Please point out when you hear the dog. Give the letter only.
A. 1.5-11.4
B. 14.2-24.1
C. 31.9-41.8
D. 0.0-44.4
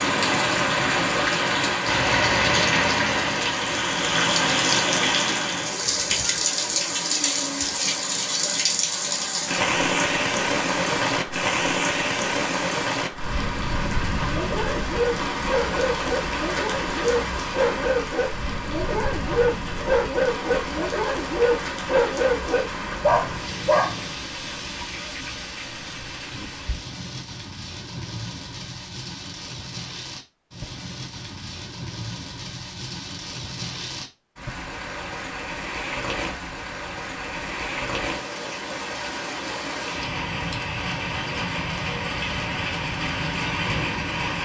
B.